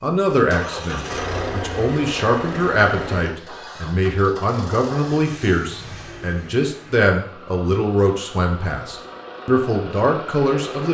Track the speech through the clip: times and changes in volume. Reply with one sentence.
You can hear the speech from 0.0 to 10.8 s, at a steady volume.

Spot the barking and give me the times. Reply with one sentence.
The barking can't be heard in this clip.